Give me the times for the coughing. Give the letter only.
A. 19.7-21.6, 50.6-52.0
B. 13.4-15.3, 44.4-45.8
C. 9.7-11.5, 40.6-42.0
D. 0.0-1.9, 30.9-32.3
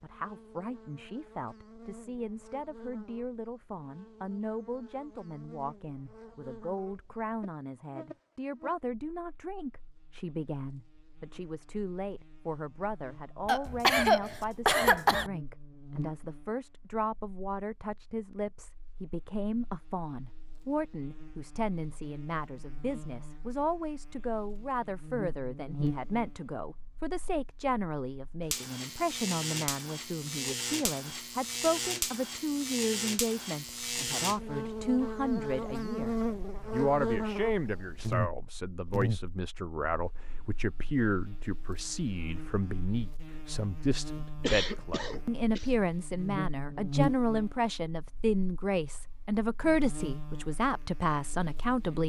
B.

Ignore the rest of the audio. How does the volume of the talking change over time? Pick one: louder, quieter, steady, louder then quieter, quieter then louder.
louder.